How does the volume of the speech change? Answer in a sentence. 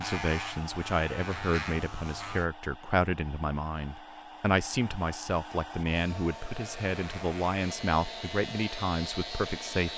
The volume of the speech stays about the same.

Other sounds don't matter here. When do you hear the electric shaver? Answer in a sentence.
The electric shaver can be heard from 0.0 to 2.5 s and from 6.5 to 9.9 s.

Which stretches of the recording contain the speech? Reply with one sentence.
The speech can be heard from 0.0 to 9.9 s.